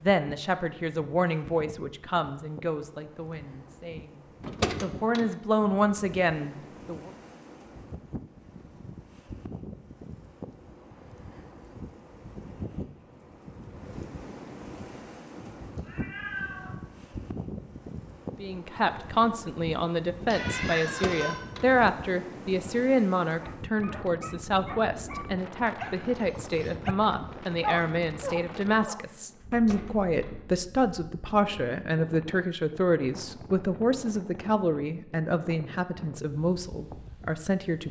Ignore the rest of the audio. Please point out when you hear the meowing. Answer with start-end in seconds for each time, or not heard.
15.3-16.7, 20.2-21.4.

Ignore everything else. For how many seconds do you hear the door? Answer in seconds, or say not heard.
3 s.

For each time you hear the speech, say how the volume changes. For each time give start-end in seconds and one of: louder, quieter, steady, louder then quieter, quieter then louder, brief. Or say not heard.
0.0-7.1 quieter then louder
18.4-37.8 steady.